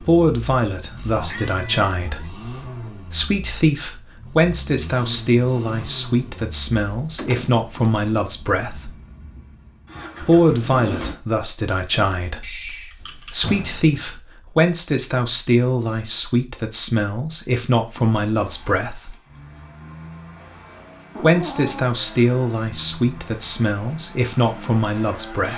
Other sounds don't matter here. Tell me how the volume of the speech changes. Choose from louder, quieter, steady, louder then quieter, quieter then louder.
steady.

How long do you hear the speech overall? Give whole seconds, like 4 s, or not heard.
22 s.